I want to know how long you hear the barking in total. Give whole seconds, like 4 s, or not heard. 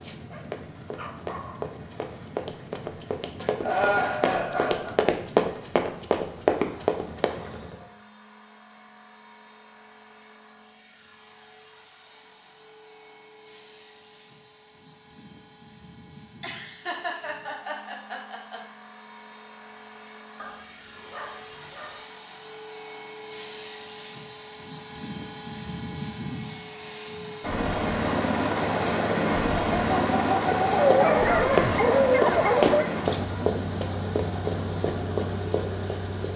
5 s.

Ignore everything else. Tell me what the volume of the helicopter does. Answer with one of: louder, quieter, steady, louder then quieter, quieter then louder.
louder.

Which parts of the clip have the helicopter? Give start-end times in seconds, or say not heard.
0.0-36.3.